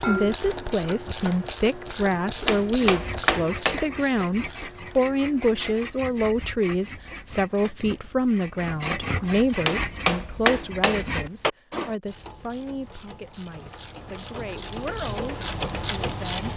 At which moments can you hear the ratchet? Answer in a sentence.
You can hear the ratchet from 0.0 to 5.8 s and from 12.1 to 16.5 s.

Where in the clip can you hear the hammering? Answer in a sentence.
You can hear the hammering from 2.4 to 3.8 s and from 9.6 to 11.5 s.